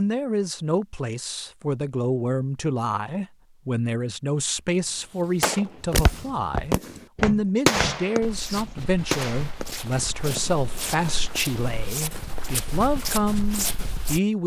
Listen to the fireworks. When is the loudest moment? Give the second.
8 s.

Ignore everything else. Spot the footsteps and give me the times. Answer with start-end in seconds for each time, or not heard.
5.8-14.2.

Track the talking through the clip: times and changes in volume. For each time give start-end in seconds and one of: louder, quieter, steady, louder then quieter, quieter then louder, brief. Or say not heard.
0.0-14.4 steady.